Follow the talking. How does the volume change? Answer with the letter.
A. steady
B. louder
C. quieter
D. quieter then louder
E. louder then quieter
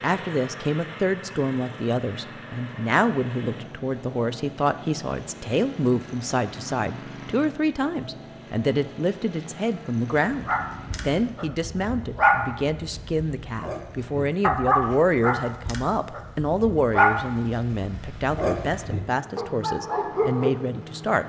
A.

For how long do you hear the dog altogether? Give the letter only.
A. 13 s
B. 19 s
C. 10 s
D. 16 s
C.